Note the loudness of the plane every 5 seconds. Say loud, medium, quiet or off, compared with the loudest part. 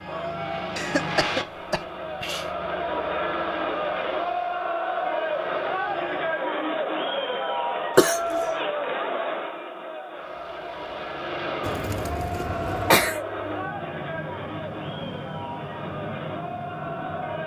loud, medium, loud, loud.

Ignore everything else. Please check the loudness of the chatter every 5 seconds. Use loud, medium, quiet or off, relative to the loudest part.
loud, loud, medium, medium.